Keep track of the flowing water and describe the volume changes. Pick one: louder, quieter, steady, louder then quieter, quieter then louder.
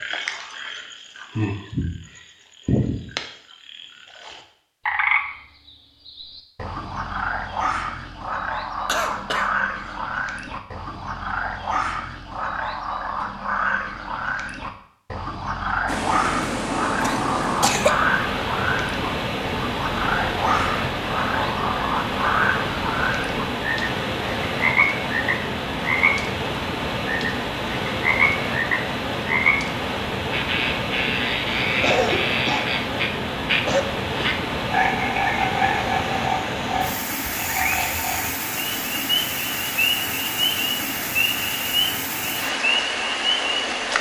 steady.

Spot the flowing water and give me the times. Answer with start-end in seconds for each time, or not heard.
15.8-43.9.